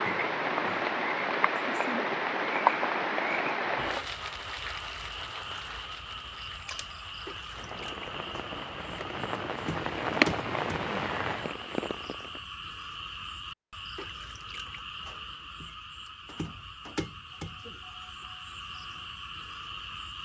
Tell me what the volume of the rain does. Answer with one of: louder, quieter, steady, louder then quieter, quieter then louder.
quieter then louder.